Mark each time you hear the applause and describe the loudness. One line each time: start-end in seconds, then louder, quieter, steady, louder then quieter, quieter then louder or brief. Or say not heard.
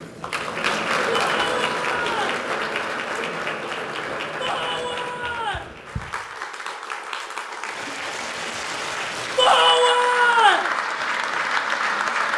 0.0-12.3 quieter then louder.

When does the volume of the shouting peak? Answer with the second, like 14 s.
10 s.